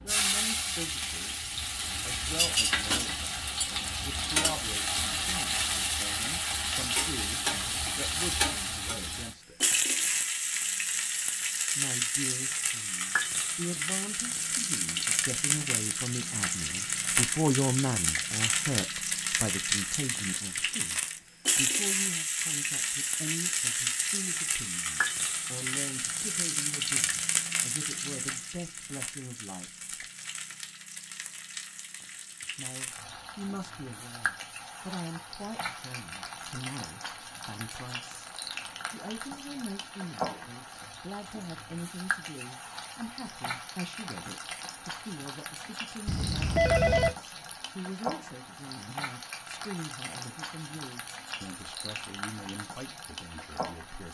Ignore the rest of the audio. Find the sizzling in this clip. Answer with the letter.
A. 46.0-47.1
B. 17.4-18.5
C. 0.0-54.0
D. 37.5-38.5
C.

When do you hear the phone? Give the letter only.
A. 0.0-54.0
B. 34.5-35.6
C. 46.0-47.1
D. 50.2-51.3
C.